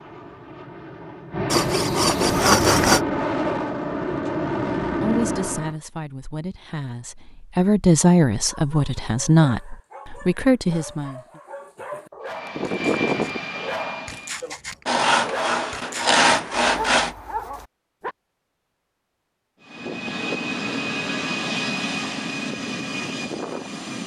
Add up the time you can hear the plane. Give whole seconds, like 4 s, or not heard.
12 s.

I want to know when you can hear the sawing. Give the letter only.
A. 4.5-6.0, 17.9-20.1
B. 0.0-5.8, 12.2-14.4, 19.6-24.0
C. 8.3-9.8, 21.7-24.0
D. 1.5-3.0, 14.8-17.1
D.